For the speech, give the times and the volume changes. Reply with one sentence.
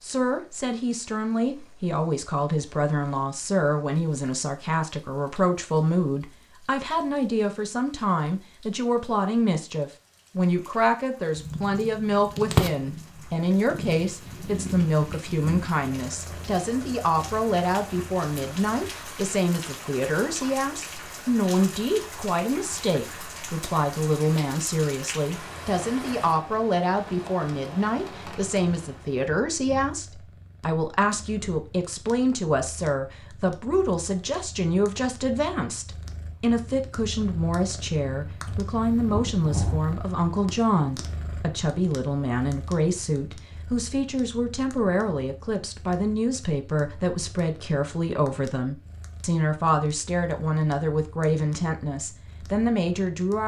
You can hear the speech from 0.0 to 53.4 s, at a steady volume.